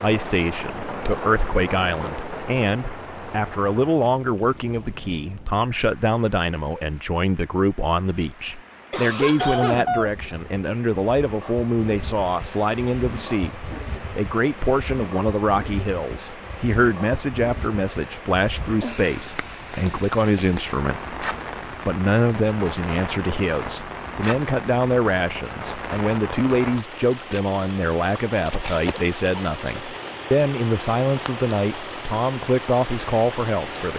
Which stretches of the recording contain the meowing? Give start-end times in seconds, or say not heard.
9.4-10.6.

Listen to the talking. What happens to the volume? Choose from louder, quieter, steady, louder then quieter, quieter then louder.
steady.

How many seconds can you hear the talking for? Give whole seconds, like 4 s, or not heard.
34 s.